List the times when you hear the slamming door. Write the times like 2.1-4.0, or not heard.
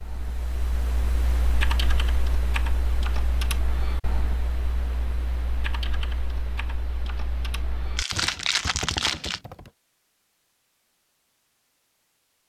not heard.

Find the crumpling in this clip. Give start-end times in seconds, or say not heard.
8.0-9.4.